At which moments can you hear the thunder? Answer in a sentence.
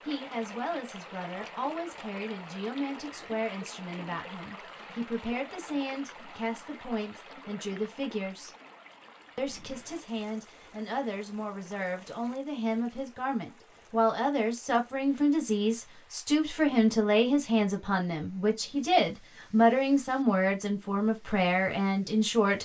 The thunder can't be heard in this clip.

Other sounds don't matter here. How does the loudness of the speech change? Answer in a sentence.
The loudness of the speech goes up.